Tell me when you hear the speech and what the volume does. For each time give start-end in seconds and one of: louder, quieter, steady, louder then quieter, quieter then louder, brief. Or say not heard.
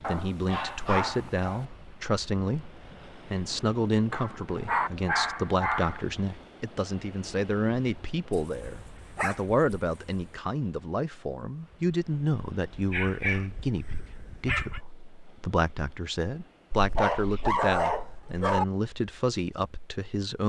0.1-20.4 steady.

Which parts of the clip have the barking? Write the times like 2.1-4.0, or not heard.
0.0-1.6, 4.1-6.0, 8.3-10.2, 12.7-14.8, 16.7-18.6.